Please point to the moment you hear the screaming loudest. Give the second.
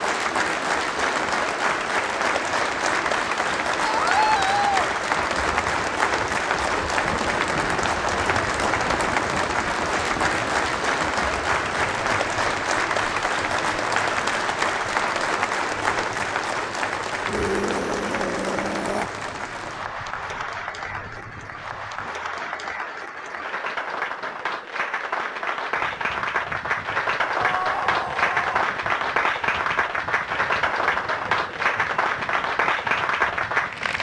4 s.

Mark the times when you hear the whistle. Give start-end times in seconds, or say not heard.
not heard.